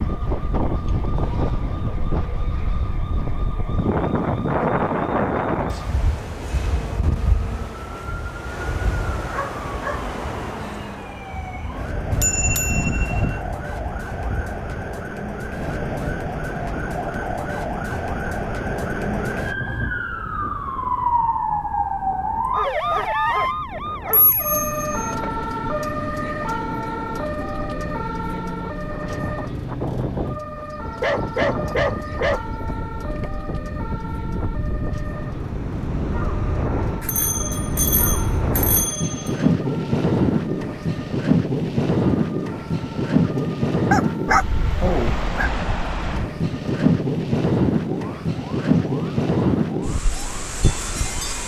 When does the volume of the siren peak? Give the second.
23 s.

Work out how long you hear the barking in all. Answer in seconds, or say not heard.
4 s.